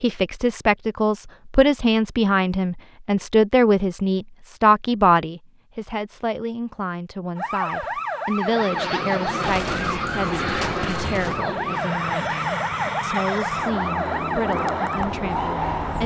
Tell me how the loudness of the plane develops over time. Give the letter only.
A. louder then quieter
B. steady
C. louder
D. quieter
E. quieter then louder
B.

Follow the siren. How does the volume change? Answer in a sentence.
The loudness of the siren stays about the same.